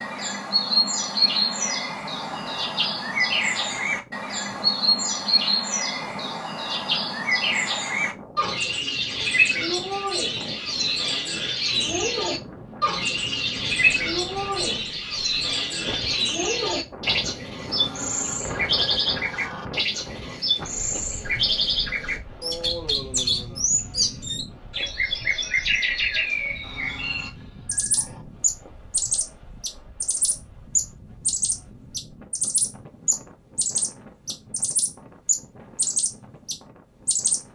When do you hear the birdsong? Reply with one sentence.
You can hear the birdsong from 0.0 to 37.4 s.